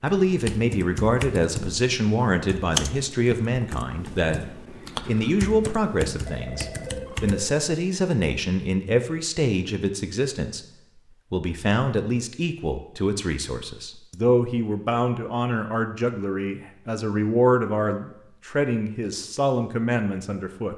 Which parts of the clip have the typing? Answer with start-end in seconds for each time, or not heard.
0.2-7.5.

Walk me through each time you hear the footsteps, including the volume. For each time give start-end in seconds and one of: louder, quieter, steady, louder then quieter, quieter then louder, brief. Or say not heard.
not heard.